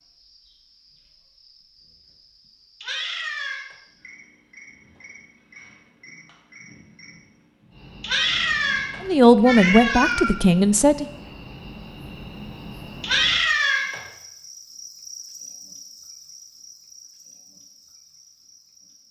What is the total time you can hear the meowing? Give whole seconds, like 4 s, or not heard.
4 s.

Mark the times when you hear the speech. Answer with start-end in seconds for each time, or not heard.
9.1-11.1.